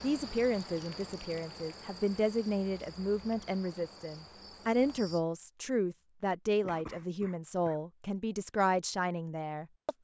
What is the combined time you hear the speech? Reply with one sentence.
You can hear the speech for 10 seconds altogether.